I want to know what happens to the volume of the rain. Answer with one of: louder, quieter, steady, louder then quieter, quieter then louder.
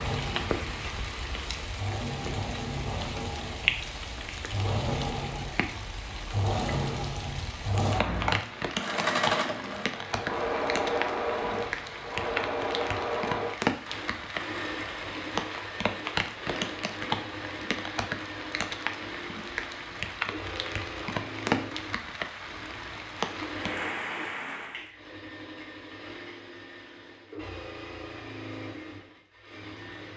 steady.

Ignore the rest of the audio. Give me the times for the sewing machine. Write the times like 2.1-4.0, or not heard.
0.0-30.1.